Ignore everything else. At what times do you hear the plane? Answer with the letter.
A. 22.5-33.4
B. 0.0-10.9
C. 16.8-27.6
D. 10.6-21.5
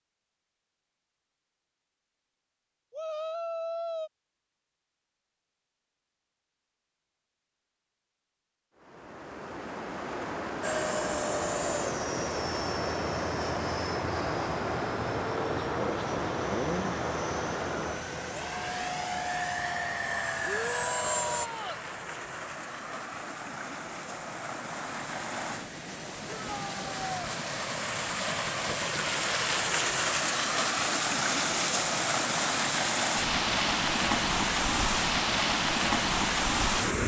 D.